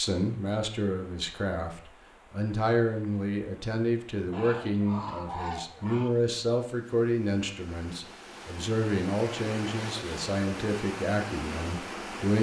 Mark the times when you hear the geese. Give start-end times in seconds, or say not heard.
4.3-6.2.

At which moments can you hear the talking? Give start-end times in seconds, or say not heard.
0.0-12.3.